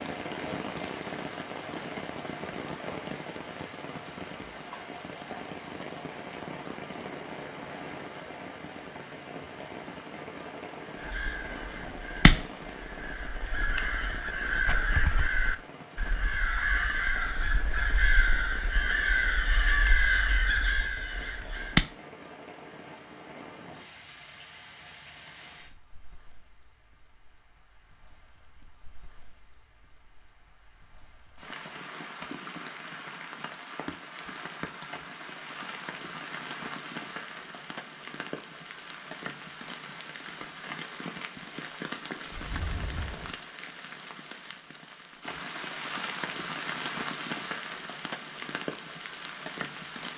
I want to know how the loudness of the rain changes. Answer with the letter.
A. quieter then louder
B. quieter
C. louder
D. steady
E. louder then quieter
A.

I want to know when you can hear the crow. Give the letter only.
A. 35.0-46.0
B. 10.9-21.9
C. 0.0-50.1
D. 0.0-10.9
B.